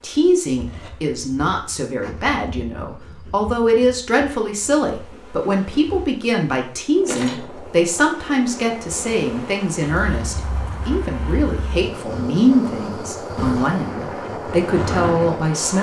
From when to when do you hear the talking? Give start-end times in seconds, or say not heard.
0.0-15.7.